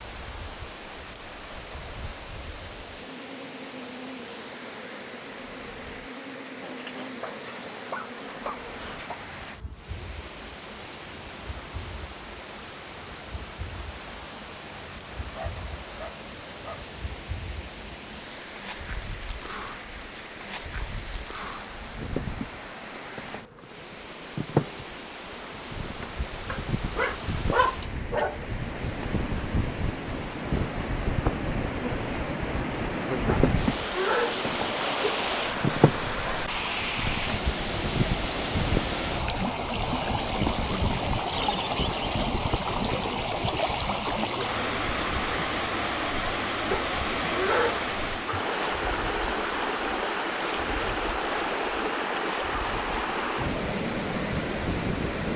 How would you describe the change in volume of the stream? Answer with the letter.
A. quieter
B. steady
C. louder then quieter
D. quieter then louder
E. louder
E.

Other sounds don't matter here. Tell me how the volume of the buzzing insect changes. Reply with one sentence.
The volume of the buzzing insect goes up, then down.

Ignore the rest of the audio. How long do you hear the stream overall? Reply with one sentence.
You can hear the stream for 55 seconds altogether.